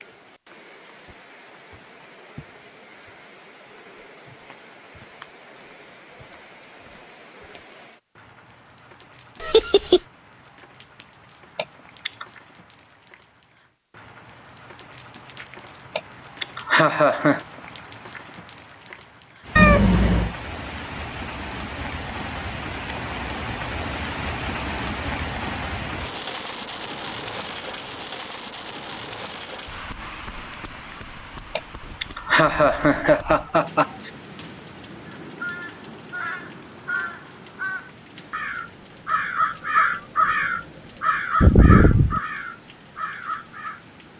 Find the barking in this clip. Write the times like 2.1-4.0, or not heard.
not heard.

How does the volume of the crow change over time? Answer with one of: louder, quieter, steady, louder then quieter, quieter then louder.
louder then quieter.